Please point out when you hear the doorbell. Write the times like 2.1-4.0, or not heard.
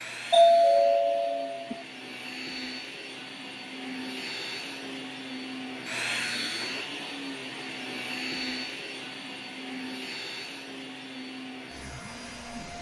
0.3-1.8.